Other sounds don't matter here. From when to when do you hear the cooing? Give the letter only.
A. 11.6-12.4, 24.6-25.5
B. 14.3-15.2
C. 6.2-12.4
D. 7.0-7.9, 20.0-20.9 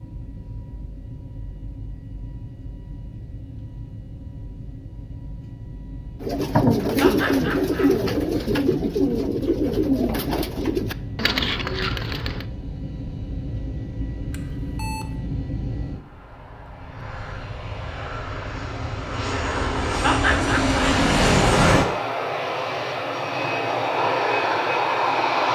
C.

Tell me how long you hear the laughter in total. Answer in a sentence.
The laughter can be heard for 2 seconds in total.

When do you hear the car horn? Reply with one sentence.
You can't hear the car horn here.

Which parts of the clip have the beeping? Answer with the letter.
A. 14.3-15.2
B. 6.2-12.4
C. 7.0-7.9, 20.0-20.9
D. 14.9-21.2
A.